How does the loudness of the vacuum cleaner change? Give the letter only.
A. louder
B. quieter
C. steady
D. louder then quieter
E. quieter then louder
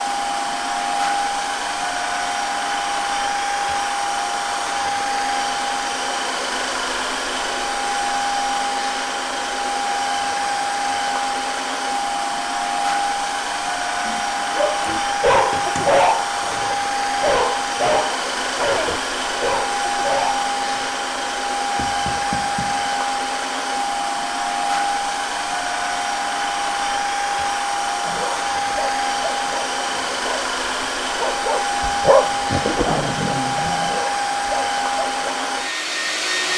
C.